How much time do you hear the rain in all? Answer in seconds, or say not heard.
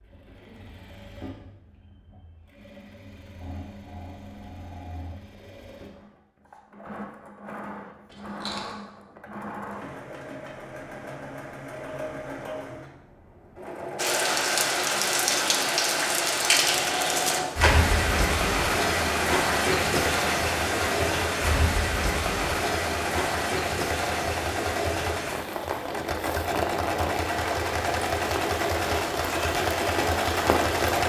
17 s.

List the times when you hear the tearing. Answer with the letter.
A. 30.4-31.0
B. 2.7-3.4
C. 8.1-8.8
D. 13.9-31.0
C.